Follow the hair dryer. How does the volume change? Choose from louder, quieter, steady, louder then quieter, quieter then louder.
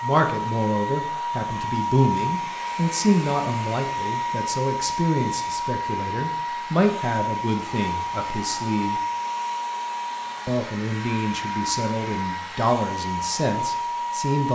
steady.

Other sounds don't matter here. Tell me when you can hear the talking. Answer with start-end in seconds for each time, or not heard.
0.0-9.0, 10.4-14.5.